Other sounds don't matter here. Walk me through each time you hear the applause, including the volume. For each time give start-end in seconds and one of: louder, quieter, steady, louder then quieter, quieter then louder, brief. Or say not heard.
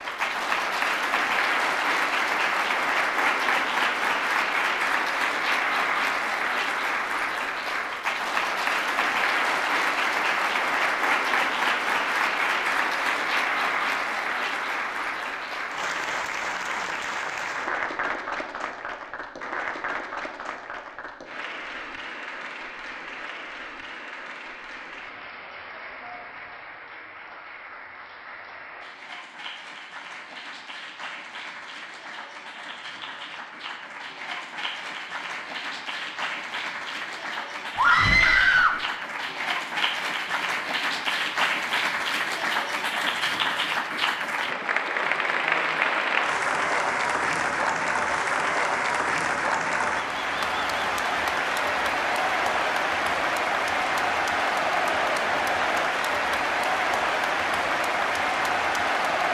0.0-59.2 quieter then louder.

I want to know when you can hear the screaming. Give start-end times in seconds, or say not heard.
37.8-38.8.